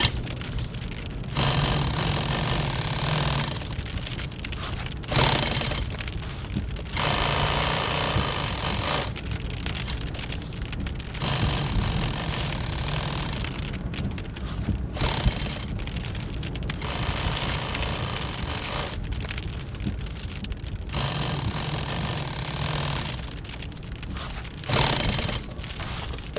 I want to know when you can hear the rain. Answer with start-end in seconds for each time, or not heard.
0.0-26.3.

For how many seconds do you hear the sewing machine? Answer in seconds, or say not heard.
26 s.